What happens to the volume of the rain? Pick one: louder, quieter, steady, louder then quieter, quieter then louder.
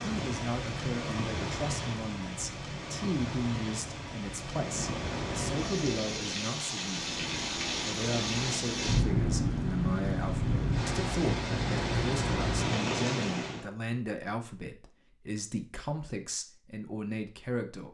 louder.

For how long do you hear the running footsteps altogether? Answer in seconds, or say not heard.
not heard.